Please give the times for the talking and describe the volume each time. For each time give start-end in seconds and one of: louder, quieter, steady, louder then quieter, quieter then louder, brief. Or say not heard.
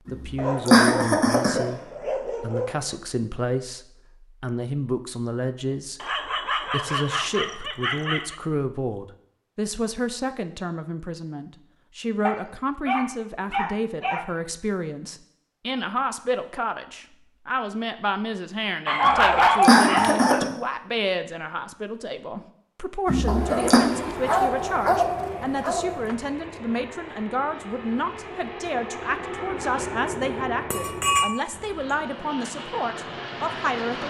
0.1-34.0 steady.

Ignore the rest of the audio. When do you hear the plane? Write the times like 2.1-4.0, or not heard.
23.3-34.0.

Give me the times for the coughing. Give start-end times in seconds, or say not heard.
0.1-1.6, 19.1-20.4, 23.1-23.8.